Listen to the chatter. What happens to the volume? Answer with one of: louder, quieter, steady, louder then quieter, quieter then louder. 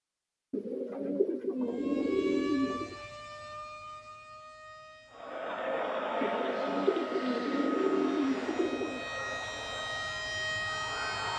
quieter.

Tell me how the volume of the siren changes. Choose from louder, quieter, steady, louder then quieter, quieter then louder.
quieter then louder.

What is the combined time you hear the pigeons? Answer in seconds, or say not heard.
5 s.